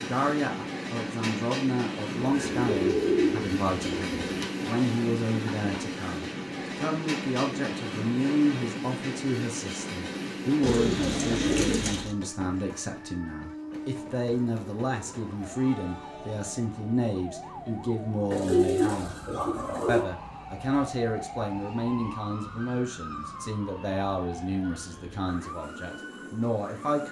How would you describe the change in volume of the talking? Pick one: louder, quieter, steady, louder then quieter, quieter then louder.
steady.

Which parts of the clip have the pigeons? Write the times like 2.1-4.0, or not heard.
2.1-4.5, 10.6-12.2, 18.3-20.1.